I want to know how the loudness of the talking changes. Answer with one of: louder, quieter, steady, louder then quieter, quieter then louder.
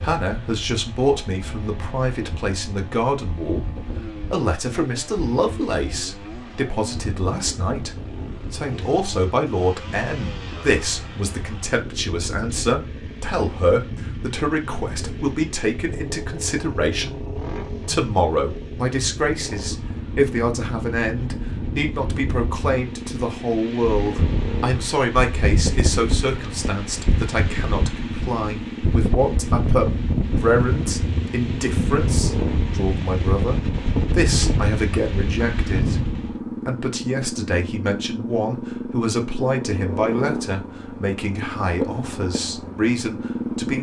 steady.